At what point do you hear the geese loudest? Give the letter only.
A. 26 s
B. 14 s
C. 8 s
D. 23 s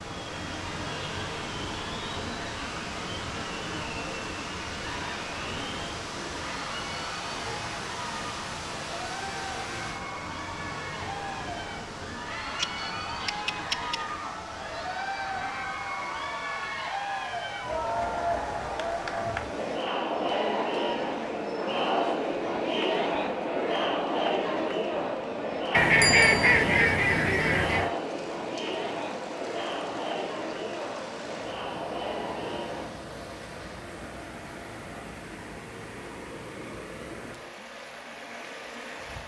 A.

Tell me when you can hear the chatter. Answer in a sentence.
The chatter can be heard from 0.1 to 33.0 s.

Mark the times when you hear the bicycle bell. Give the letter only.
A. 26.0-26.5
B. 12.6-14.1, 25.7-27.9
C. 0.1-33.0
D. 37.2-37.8
A.